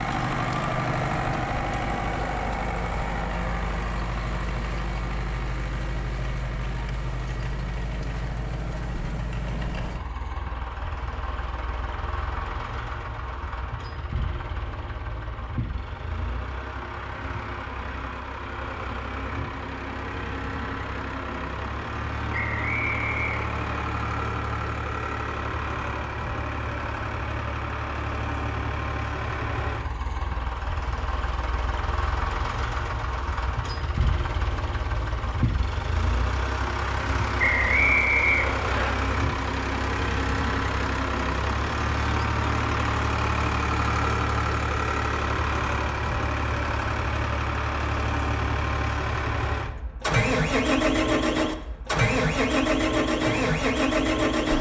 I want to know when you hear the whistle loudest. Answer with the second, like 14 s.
38 s.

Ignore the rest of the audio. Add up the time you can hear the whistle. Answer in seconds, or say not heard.
3 s.